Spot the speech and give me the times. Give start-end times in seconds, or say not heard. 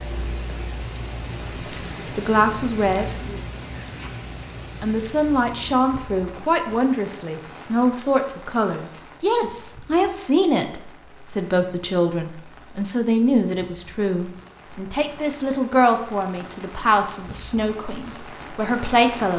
2.1-3.4, 4.8-19.3.